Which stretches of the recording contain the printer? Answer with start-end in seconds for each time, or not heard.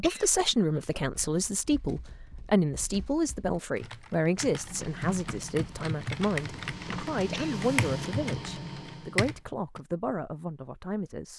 4.5-9.3.